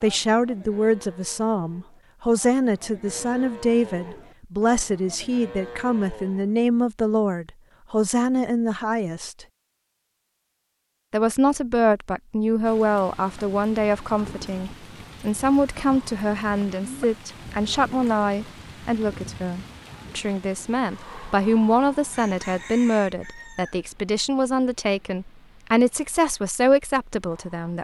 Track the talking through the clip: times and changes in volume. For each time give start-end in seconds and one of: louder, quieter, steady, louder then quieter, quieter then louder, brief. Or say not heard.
0.0-9.4 steady
11.1-27.7 steady.